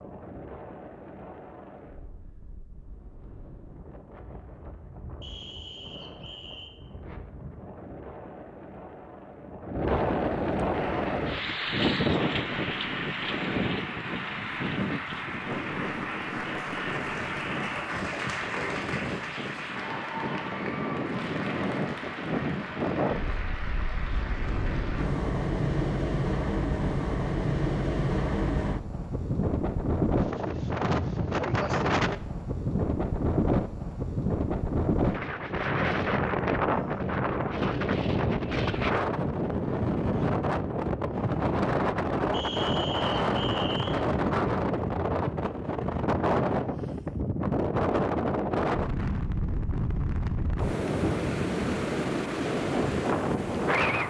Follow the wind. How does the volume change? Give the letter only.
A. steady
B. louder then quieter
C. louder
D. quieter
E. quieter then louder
C.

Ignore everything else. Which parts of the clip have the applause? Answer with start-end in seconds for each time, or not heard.
10.7-25.1.